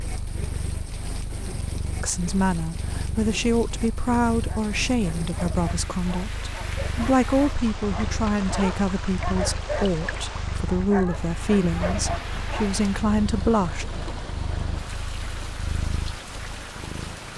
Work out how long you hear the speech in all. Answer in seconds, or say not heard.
12 s.